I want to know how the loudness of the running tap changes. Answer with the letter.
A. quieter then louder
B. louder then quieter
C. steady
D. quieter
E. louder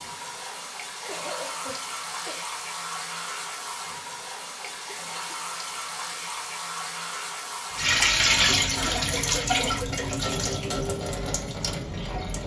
B.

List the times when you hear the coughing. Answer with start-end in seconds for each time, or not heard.
1.0-2.5, 4.6-5.3, 8.7-10.2.